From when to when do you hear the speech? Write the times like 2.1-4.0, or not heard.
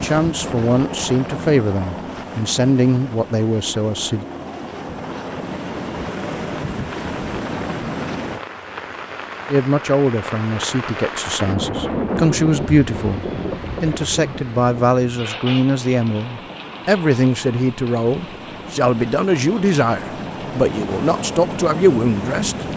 0.0-4.2, 9.4-22.6.